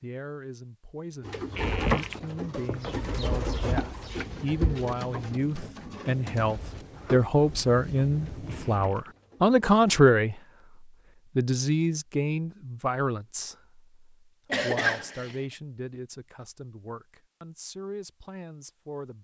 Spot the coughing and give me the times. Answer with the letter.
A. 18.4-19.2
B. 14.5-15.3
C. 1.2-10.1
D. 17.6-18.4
B.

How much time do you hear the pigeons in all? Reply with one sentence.
The pigeons can be heard for 9 seconds in total.